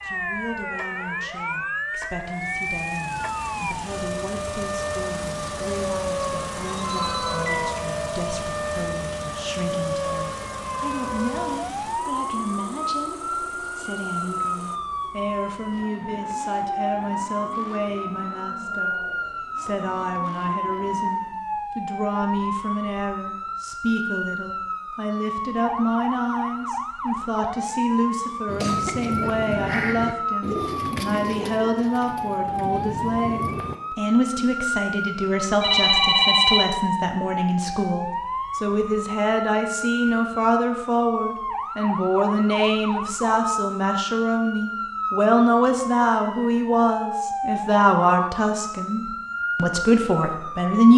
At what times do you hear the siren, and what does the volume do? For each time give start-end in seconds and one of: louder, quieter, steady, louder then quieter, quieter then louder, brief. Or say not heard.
0.0-50.9 steady.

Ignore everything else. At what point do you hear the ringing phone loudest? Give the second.
36 s.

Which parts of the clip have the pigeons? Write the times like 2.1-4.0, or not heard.
28.4-33.8.